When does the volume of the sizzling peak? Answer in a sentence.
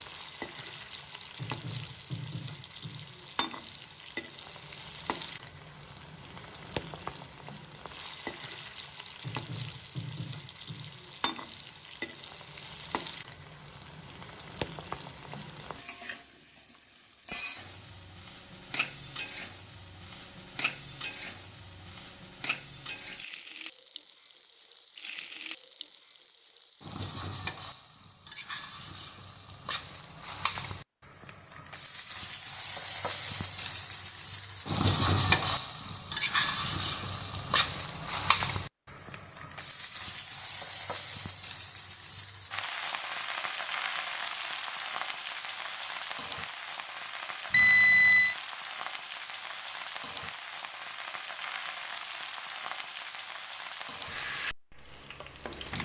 The loudest moment of the sizzling is at 35 seconds.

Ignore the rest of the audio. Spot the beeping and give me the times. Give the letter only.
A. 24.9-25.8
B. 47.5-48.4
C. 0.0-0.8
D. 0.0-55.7
B.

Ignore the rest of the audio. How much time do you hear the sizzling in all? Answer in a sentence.
You can hear the sizzling for 56 seconds altogether.